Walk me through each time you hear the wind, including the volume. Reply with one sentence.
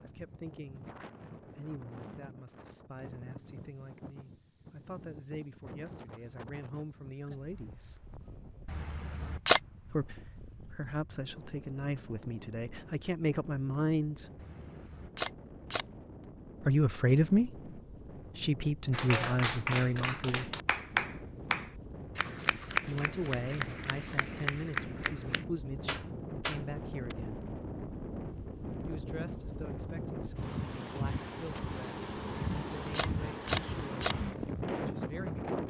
You can hear the wind from 0.0 to 35.6 s, getting louder.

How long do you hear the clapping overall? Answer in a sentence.
You can hear the clapping for 8 seconds altogether.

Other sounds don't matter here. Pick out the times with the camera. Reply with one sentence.
You can hear the camera from 8.7 to 9.6 s, from 14.3 to 15.8 s and from 32.1 to 34.1 s.